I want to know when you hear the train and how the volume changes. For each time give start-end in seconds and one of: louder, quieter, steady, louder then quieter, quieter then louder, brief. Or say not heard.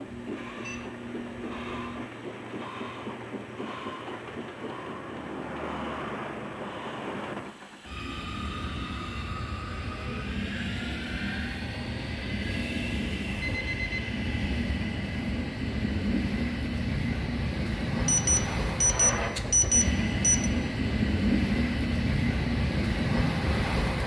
0.0-24.0 louder.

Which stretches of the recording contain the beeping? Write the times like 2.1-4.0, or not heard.
0.1-2.1, 13.4-13.8, 18.1-20.5.